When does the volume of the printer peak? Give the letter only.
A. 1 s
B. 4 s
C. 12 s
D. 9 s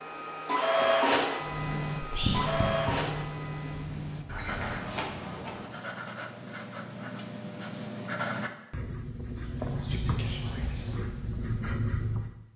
A.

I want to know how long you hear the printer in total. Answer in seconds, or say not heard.
6 s.